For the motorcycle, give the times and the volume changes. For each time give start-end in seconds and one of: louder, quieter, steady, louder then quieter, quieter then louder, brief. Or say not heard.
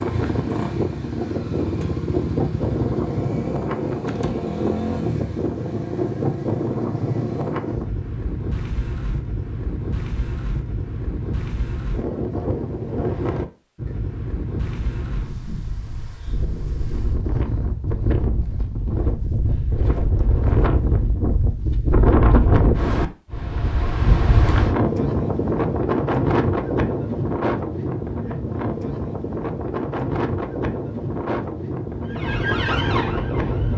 0.0-7.8 steady.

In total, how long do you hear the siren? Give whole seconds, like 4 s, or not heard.
2 s.